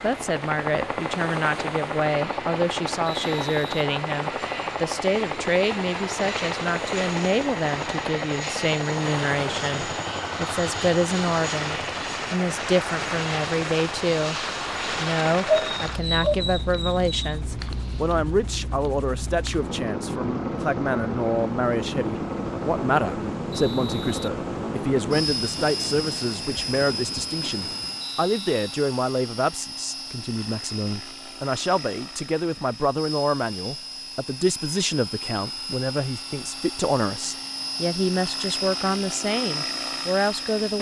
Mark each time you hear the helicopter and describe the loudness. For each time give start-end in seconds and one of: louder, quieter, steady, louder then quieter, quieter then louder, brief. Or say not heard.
0.0-40.7 steady.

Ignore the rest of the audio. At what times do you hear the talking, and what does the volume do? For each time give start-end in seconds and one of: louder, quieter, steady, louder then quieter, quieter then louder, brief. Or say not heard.
0.0-40.7 steady.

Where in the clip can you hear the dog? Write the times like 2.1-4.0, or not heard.
15.4-17.4.